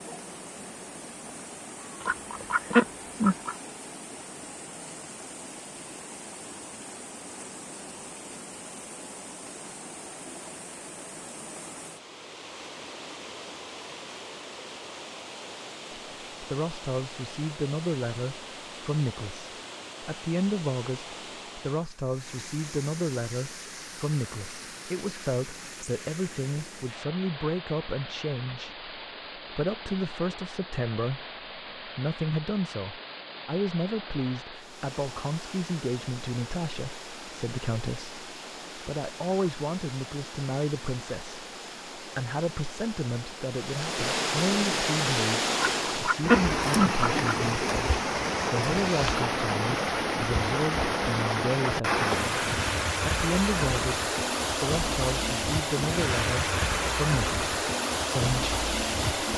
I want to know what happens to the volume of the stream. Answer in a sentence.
The volume of the stream goes up.